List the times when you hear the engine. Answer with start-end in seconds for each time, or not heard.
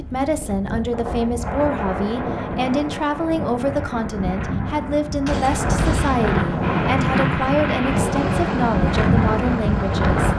6.6-10.3.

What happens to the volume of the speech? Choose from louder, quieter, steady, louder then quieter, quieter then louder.
steady.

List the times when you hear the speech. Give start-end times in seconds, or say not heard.
0.0-10.3.